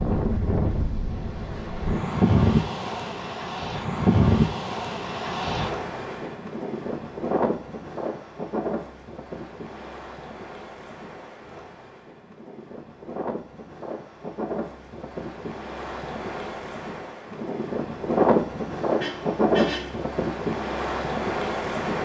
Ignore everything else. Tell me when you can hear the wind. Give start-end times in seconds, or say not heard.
0.0-22.0.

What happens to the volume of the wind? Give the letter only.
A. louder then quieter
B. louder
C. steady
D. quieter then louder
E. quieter
D.